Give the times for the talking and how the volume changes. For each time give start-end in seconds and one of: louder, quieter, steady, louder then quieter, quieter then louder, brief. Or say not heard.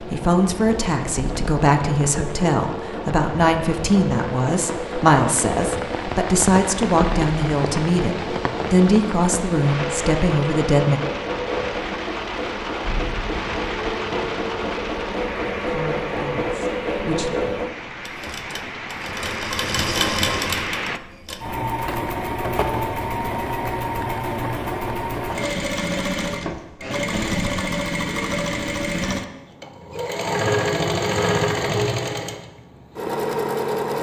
0.0-11.0 steady
15.7-17.3 brief.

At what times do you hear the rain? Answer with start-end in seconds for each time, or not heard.
0.0-21.0.